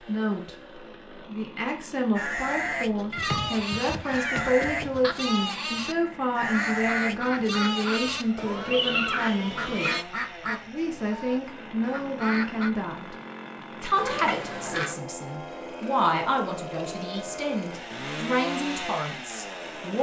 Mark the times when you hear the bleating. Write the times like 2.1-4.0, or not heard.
2.1-10.1.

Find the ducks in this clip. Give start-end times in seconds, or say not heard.
6.5-12.7.